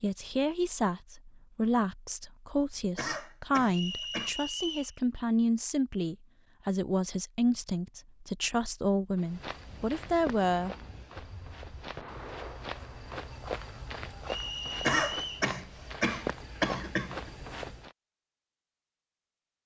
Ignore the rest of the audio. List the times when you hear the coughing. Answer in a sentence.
The coughing can be heard from 3.0 to 4.3 s and from 14.8 to 17.3 s.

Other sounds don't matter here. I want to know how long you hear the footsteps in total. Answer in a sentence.
You can hear the footsteps for 9 seconds altogether.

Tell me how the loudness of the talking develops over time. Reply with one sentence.
The volume of the talking stays about the same.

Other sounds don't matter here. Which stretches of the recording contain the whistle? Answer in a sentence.
The whistle can be heard from 3.7 to 5.0 s and from 14.2 to 15.5 s.